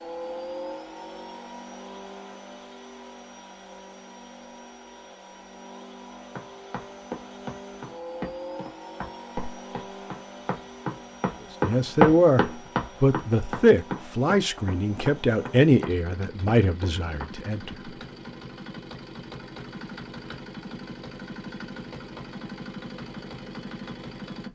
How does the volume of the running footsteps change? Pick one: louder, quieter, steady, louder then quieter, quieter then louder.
louder then quieter.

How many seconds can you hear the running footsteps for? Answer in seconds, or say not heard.
11 s.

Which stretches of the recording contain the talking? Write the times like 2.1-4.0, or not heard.
11.6-17.8.